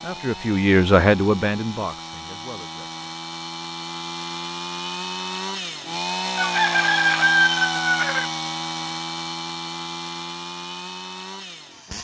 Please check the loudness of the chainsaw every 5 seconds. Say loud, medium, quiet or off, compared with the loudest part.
medium, loud, medium.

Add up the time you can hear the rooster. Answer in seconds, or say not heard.
2 s.